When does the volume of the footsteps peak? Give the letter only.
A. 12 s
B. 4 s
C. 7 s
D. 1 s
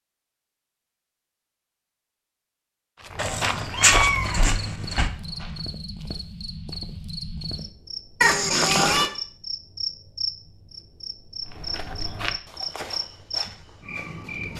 B.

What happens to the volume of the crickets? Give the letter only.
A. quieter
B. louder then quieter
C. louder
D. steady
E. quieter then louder
D.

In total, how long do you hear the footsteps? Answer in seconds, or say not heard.
6 s.